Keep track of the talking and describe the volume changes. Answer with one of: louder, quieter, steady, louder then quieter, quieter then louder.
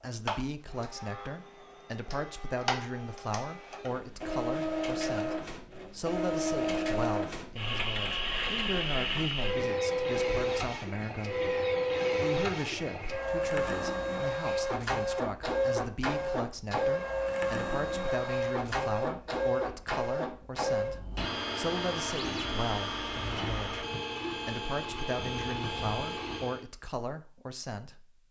steady.